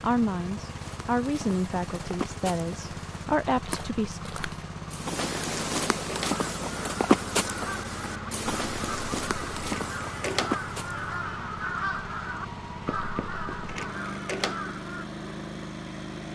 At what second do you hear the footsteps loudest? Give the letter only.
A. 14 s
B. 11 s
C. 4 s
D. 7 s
D.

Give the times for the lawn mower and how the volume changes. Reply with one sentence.
You can hear the lawn mower from 0.0 to 16.3 s, at a steady volume.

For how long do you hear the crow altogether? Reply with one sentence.
You can hear the crow for 9 seconds altogether.